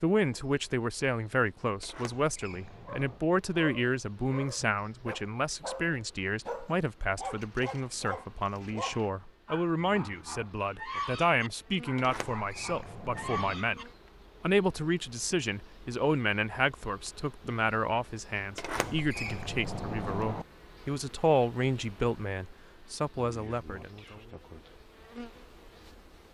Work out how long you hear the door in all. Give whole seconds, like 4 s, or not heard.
5 s.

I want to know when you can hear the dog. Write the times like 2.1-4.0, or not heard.
2.9-13.8.